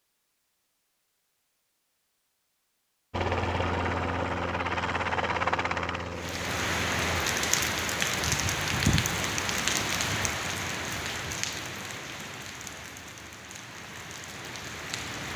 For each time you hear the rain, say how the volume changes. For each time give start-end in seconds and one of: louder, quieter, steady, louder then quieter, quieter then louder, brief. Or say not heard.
6.2-15.3 quieter.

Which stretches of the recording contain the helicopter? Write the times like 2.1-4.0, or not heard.
3.1-7.1.